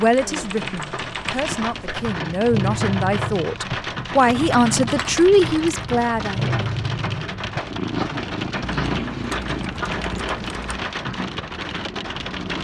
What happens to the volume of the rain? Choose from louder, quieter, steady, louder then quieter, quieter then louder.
steady.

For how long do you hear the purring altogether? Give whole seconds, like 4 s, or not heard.
11 s.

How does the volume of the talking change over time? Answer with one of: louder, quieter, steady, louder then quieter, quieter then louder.
louder.